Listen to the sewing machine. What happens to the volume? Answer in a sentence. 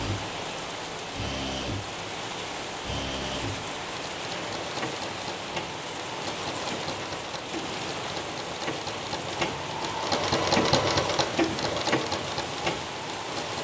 The loudness of the sewing machine goes up.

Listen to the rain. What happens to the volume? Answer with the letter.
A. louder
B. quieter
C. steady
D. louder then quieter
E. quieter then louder
C.